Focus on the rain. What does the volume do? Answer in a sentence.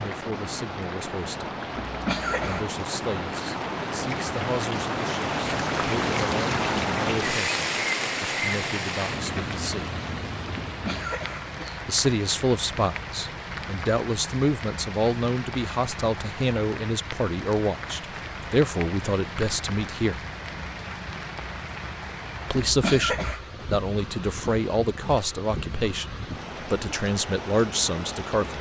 The loudness of the rain goes down.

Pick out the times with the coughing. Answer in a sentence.
You can hear the coughing from 1.8 to 2.6 s, from 10.7 to 11.8 s and from 22.6 to 23.5 s.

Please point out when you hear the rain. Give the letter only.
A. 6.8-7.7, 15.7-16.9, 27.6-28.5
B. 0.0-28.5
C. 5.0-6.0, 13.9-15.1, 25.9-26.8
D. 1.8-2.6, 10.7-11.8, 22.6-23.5
B.